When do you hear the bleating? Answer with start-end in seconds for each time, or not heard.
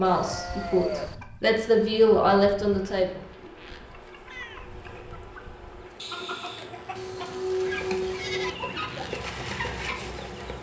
0.0-1.1, 7.0-8.6.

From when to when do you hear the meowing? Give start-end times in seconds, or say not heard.
4.2-5.4.